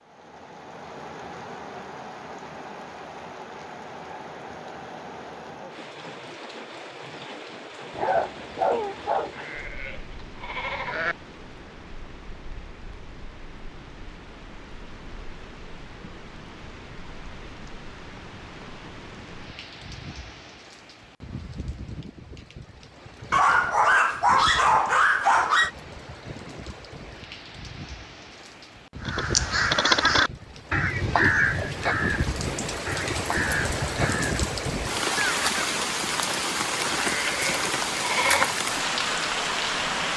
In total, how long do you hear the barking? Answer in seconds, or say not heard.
4 s.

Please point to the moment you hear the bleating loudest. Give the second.
38 s.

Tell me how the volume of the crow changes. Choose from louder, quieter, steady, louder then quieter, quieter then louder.
quieter.